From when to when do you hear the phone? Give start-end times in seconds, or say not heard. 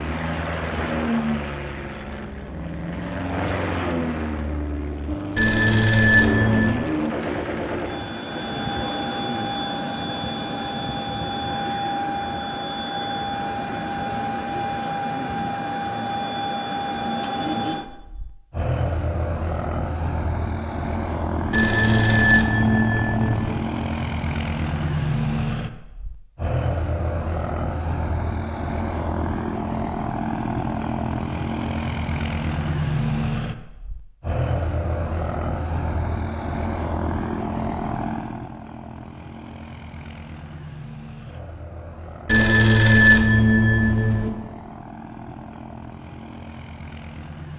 5.3-6.8, 21.5-23.6, 42.2-44.3.